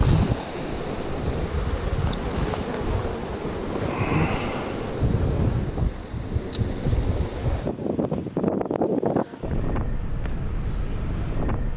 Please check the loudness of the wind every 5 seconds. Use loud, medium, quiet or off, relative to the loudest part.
loud, loud, medium.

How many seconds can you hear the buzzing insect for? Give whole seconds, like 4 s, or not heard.
6 s.